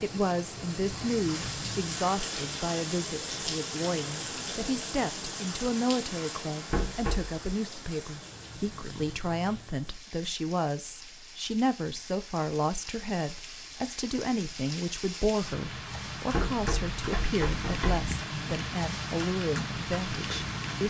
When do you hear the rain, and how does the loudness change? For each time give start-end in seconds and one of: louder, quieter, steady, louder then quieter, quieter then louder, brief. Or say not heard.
0.0-20.8 quieter then louder.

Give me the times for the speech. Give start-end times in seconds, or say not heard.
0.0-20.8.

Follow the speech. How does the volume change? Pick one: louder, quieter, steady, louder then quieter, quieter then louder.
steady.